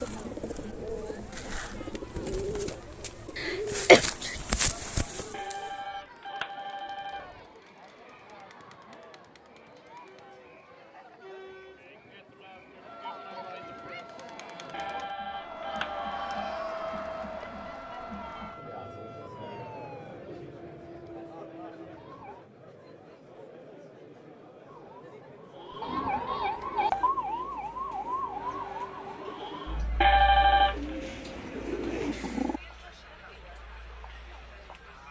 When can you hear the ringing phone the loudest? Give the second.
30 s.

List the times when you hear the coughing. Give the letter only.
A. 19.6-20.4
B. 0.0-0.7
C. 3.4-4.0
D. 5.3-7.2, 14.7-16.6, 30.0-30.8
C.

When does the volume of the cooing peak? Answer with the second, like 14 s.
5 s.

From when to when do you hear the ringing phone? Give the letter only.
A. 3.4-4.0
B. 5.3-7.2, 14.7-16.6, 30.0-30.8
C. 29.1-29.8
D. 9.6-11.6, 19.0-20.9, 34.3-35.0
B.